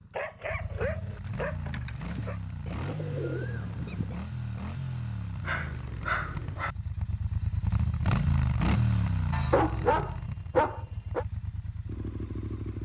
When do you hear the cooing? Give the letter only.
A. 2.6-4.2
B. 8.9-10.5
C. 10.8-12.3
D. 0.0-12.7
A.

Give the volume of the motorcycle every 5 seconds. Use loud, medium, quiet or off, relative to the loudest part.
medium, loud, medium.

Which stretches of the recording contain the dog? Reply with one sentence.
The dog can be heard from 0.1 to 2.4 s, from 5.4 to 6.8 s and from 9.3 to 11.2 s.